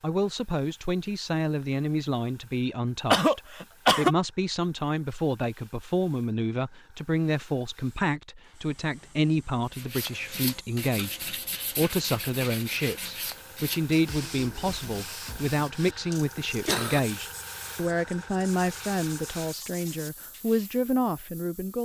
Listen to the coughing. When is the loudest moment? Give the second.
4 s.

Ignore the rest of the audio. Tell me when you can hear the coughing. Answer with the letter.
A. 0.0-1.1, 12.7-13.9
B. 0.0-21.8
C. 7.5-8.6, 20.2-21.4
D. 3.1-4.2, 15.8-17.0
D.